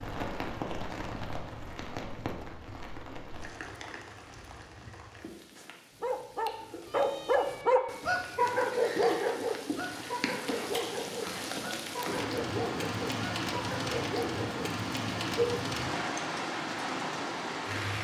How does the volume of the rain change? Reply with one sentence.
The volume of the rain goes down, then up.